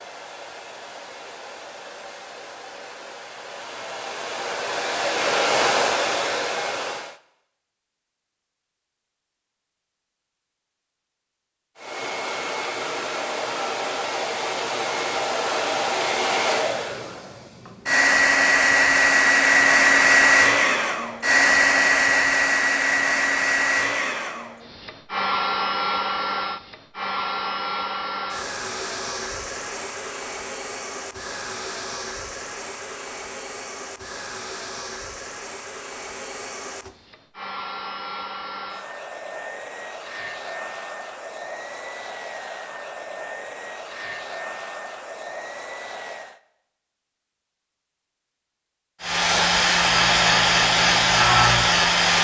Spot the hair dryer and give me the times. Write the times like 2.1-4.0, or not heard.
0.0-7.2, 11.8-46.4, 49.0-52.1.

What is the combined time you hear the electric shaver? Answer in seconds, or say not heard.
2 s.